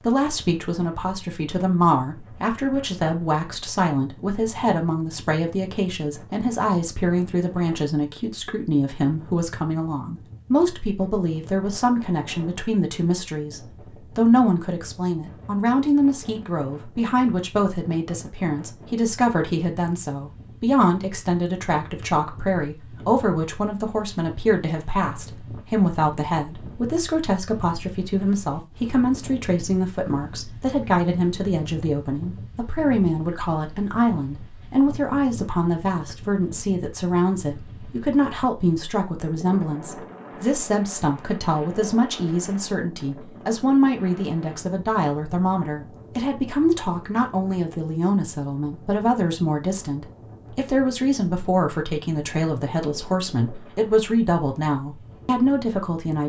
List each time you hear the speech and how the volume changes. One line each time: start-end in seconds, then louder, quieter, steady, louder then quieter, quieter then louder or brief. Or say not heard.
0.0-56.2 steady.